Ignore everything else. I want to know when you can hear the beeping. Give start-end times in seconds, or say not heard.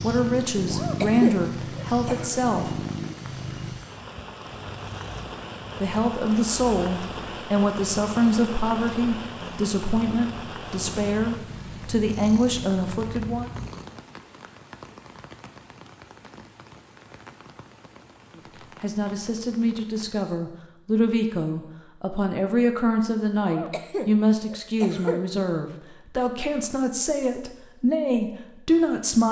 not heard.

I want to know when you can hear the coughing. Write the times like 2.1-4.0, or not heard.
0.7-2.4, 23.4-25.2.